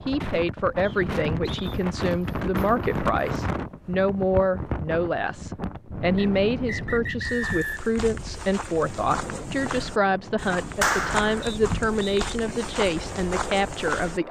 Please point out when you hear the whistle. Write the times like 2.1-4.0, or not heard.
0.8-1.8, 6.2-7.9, 11.4-12.2.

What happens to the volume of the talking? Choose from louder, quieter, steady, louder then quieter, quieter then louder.
steady.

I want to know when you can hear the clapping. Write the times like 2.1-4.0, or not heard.
10.8-11.4.